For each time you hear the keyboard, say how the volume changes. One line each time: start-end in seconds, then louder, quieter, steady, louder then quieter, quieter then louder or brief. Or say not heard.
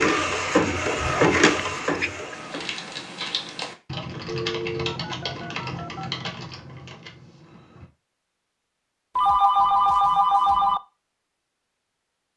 2.3-7.9 quieter.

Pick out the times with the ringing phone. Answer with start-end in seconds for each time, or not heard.
1.0-2.4, 4.2-6.2, 9.2-10.8.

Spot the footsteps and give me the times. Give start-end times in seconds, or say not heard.
not heard.